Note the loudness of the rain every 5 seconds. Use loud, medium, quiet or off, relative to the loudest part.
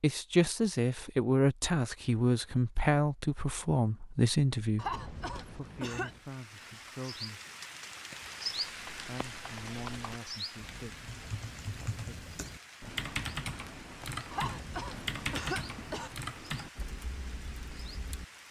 off, loud, medium, medium.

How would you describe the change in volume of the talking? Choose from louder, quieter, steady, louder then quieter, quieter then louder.
quieter.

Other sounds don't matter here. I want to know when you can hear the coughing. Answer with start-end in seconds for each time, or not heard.
4.8-6.2, 14.3-16.1.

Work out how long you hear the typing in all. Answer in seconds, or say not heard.
10 s.